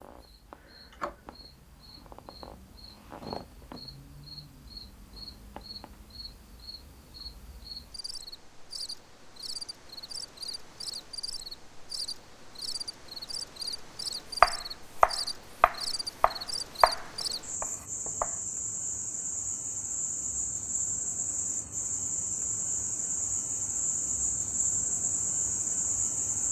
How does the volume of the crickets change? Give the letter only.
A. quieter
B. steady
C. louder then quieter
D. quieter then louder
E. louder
E.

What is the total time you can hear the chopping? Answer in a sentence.
The chopping can be heard for 4 seconds in total.